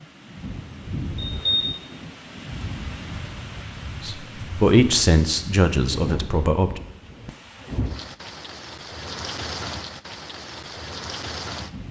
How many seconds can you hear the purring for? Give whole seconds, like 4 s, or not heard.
not heard.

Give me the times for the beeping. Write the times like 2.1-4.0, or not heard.
1.1-1.8.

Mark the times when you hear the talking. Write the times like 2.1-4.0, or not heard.
4.0-6.8.